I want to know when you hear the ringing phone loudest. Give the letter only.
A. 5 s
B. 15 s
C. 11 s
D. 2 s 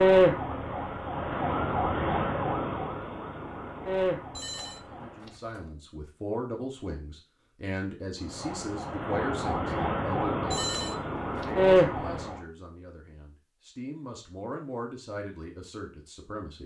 C.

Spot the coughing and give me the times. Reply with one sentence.
The coughing can't be heard in this clip.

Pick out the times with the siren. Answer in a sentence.
The siren can be heard from 0.0 to 5.3 s and from 8.2 to 12.4 s.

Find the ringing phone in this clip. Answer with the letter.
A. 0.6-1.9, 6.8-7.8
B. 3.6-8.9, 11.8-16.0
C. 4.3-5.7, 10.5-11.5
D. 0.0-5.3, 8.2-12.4
C.